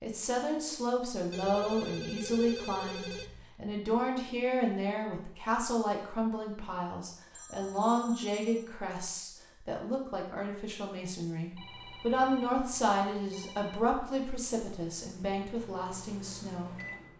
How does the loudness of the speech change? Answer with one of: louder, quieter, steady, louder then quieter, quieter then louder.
steady.